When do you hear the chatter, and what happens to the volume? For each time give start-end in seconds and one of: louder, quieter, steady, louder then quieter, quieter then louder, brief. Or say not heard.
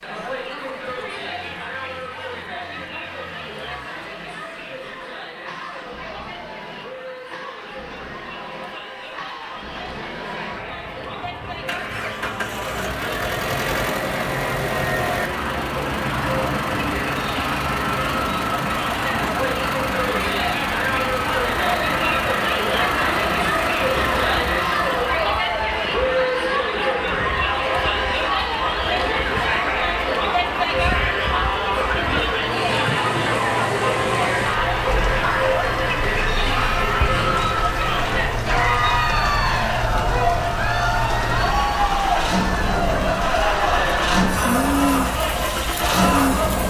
0.0-46.6 louder.